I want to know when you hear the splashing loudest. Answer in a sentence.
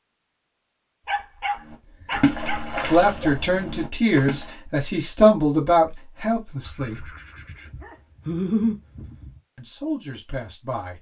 The volume of the splashing peaks at 2 seconds.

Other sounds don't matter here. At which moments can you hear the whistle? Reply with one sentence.
The whistle can't be heard in this clip.